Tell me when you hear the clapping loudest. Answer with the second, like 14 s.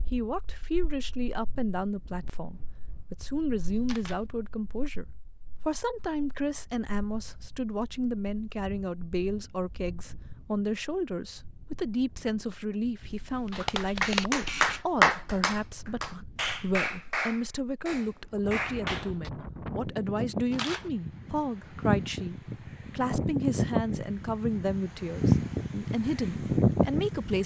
15 s.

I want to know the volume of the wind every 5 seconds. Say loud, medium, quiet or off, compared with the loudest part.
quiet, quiet, quiet, quiet, medium, loud.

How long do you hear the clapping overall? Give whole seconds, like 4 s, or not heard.
6 s.